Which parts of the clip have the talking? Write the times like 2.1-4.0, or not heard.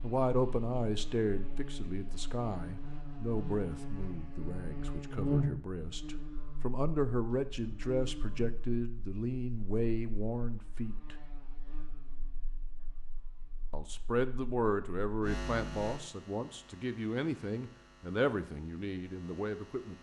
0.0-11.2, 13.7-19.9.